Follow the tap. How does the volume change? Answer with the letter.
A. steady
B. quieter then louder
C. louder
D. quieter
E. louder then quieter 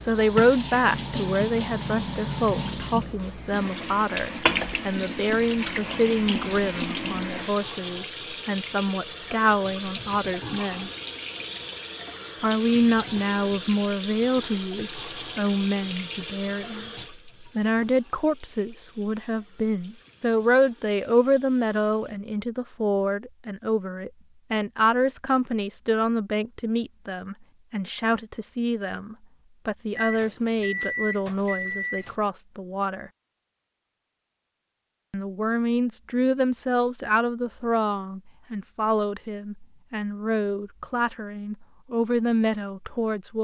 D.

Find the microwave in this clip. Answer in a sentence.
The microwave can be heard from 29.9 to 32.1 s.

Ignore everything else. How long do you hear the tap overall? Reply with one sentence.
The tap can be heard for 22 seconds in total.